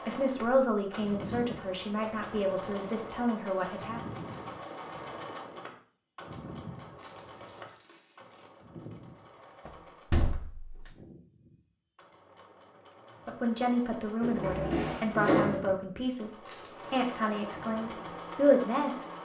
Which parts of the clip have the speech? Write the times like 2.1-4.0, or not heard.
0.0-4.0, 13.2-19.0.